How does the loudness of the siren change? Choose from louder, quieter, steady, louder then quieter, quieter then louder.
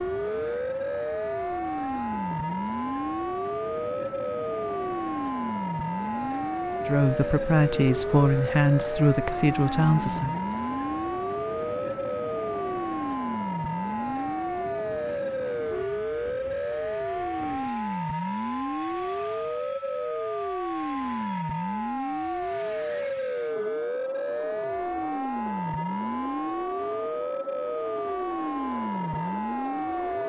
steady.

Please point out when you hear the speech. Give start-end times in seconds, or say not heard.
6.8-10.3.